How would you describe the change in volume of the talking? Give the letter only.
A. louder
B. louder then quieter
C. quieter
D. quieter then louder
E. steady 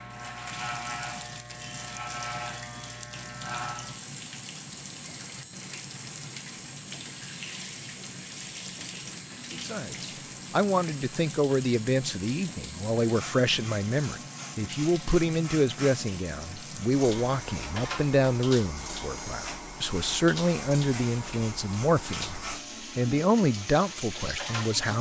E.